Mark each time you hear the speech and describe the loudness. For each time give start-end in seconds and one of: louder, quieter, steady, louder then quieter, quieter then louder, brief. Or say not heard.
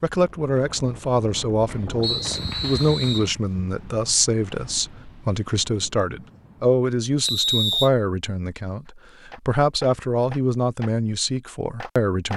0.0-12.3 steady.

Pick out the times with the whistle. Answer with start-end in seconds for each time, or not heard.
2.0-3.3, 7.2-7.9.